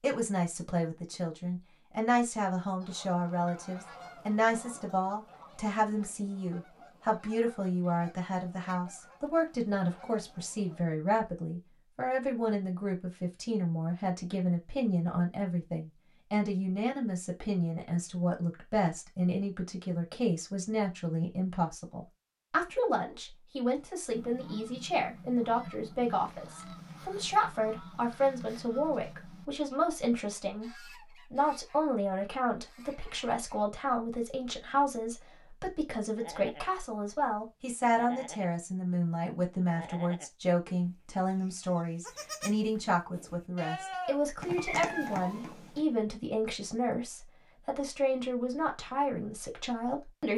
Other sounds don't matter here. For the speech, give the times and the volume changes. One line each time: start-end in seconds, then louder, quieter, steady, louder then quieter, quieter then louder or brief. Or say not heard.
0.0-50.3 steady.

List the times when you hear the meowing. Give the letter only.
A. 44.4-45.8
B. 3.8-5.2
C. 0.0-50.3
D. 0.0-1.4
A.